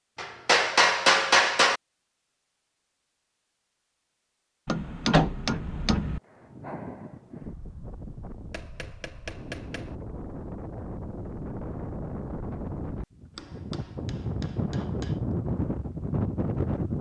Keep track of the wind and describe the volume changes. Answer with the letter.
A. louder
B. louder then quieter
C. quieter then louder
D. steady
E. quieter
A.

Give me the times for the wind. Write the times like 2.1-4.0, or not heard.
6.1-16.9.